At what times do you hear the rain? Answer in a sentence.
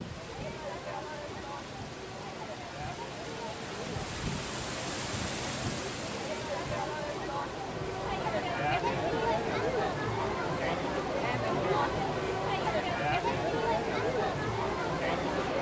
The rain can be heard from 0.0 to 15.5 s.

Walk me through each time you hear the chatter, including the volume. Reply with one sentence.
The chatter can be heard from 0.0 to 15.5 s, getting louder.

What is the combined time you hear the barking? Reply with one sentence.
The barking can't be heard in this clip.